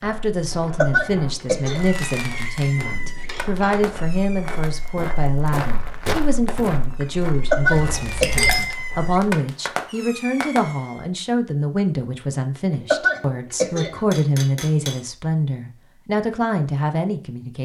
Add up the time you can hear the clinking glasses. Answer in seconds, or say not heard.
3 s.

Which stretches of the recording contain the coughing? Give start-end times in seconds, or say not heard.
0.8-1.9, 7.3-8.6, 12.9-14.0.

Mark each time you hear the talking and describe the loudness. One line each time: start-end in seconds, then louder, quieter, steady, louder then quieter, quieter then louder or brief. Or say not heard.
0.0-17.6 steady.